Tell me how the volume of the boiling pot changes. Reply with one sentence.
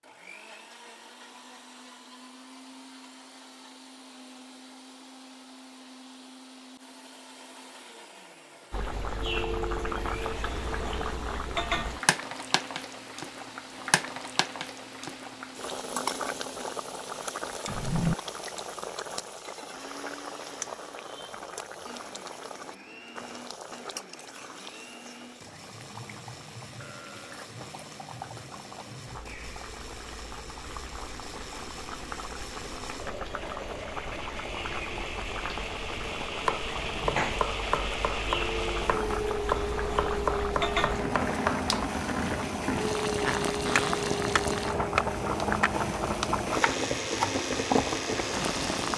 The loudness of the boiling pot goes down, then up.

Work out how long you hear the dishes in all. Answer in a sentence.
The dishes can't be heard in this clip.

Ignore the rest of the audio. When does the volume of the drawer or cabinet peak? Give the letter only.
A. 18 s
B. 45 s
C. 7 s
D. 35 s
A.